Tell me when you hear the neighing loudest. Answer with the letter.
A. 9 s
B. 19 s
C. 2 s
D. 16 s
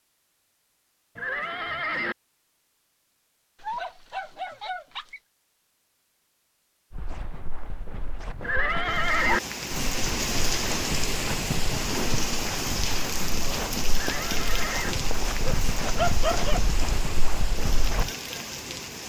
A.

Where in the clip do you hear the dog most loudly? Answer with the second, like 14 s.
16 s.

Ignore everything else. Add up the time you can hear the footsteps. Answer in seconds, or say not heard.
11 s.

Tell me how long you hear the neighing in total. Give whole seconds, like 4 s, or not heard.
3 s.